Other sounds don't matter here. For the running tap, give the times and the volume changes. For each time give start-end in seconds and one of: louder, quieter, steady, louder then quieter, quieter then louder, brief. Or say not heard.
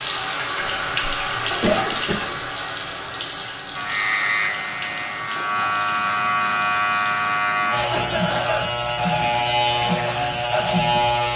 0.0-7.4 quieter.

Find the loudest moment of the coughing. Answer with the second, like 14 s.
2 s.